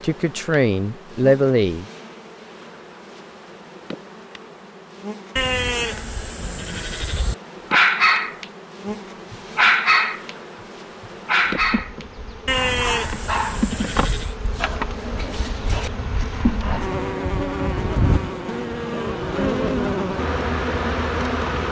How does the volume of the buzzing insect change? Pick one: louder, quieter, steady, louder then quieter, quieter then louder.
louder.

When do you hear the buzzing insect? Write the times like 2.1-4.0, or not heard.
0.0-21.6.